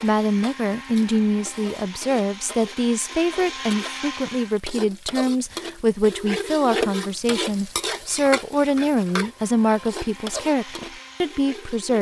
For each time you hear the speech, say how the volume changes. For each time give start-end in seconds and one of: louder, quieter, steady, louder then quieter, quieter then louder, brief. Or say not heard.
0.0-11.9 steady.